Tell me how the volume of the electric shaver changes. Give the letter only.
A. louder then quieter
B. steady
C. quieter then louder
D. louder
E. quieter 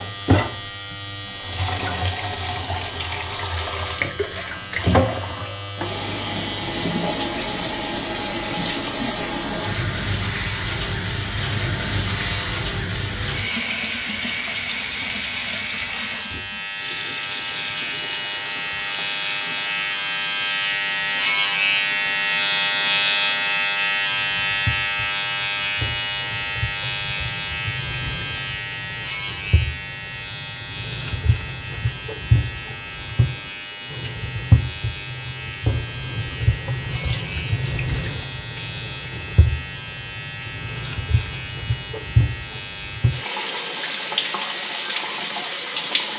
A.